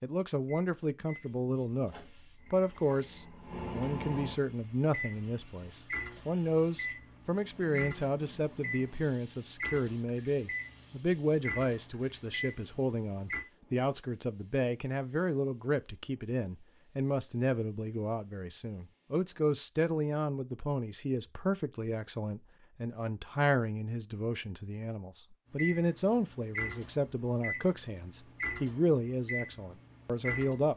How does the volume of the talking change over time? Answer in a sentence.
The volume of the talking stays about the same.